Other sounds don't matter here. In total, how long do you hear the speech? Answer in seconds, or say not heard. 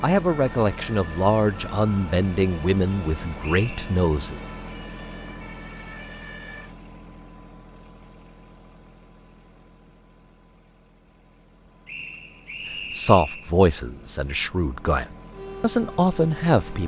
8 s.